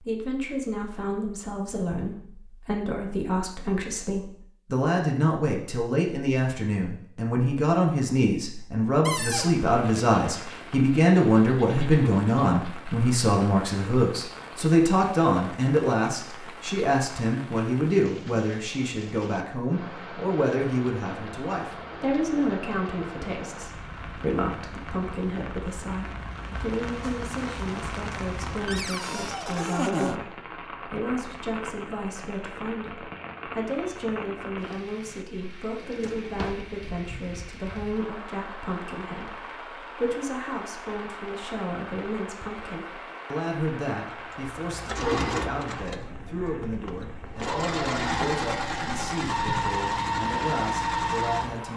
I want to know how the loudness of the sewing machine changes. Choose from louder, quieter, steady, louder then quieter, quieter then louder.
quieter then louder.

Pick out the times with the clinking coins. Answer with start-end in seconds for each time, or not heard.
not heard.